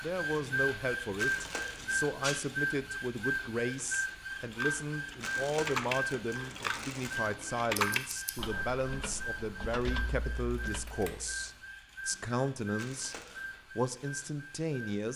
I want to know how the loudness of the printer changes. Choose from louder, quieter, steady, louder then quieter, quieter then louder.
quieter.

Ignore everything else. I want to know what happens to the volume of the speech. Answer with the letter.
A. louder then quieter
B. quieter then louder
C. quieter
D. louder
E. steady
E.